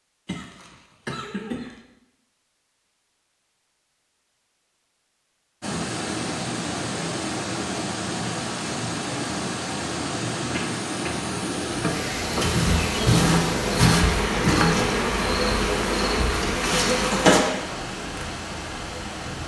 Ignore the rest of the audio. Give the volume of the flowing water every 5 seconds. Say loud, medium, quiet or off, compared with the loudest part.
off, loud, loud, loud.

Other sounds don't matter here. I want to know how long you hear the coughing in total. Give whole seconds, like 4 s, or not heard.
3 s.